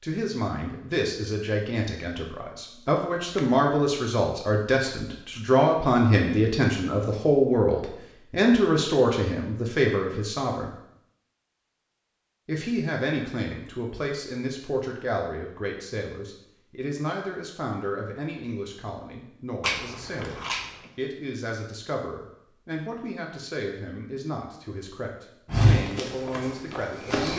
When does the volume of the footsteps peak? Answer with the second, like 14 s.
26 s.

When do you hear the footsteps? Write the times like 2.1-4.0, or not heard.
25.4-27.3.